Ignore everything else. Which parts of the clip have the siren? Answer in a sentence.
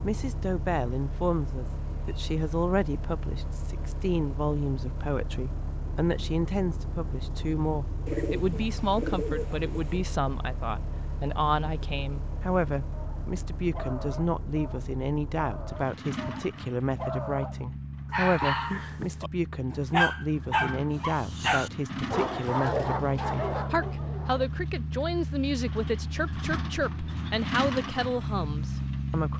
You can't hear the siren here.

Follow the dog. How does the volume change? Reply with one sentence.
The loudness of the dog goes up, then down.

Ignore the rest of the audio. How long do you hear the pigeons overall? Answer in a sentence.
The pigeons can be heard for 2 seconds in total.